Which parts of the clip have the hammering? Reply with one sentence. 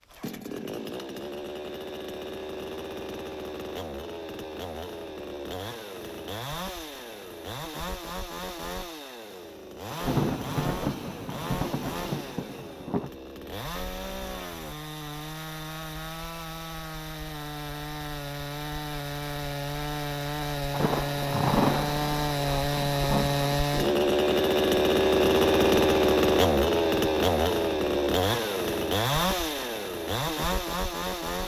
The hammering can't be heard in this clip.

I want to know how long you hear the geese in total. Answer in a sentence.
The geese can't be heard in this clip.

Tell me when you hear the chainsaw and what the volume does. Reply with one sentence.
The chainsaw can be heard from 0.0 to 31.4 s, getting louder.